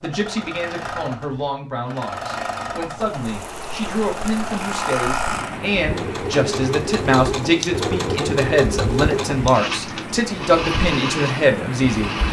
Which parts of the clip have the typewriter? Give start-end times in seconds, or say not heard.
not heard.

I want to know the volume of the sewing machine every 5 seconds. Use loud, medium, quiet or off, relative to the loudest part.
medium, loud, loud.